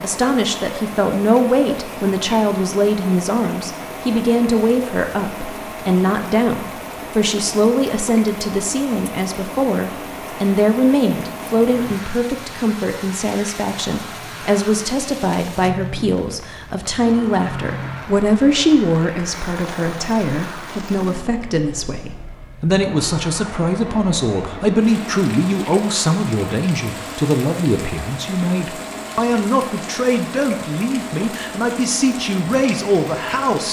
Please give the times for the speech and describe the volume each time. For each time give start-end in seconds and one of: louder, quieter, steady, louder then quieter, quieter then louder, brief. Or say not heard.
0.0-33.6 steady.